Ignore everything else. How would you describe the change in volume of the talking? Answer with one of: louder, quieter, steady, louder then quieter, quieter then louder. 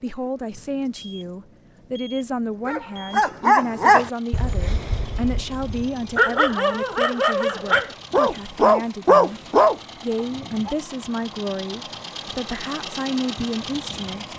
steady.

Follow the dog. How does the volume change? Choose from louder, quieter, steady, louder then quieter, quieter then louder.
quieter then louder.